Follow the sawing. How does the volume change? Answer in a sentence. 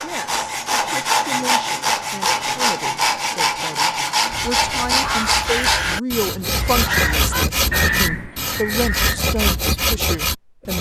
The volume of the sawing stays about the same.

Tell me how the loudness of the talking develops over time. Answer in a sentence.
The loudness of the talking goes up.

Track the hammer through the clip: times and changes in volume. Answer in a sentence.
The hammer can't be heard in this clip.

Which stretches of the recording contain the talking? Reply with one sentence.
You can hear the talking from 0.0 to 10.7 s.